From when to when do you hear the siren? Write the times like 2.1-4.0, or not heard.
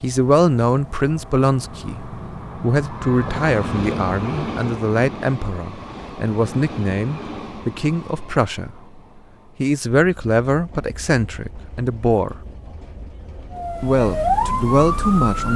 13.5-15.5.